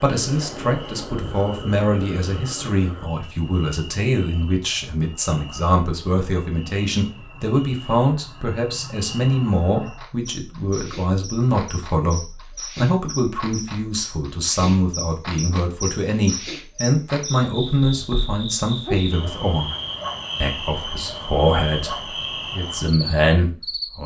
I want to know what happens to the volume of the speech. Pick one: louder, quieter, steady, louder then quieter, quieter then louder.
steady.